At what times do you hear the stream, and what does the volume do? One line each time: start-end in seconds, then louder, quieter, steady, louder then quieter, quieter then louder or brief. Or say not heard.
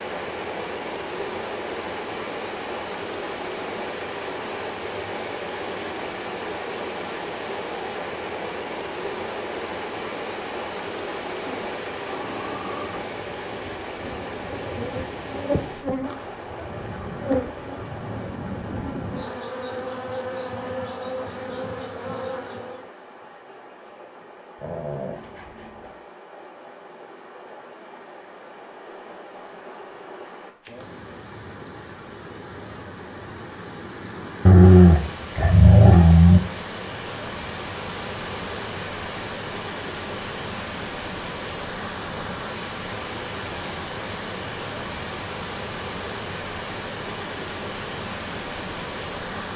0.0-49.5 quieter then louder.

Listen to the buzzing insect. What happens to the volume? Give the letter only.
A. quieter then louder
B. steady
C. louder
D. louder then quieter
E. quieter
C.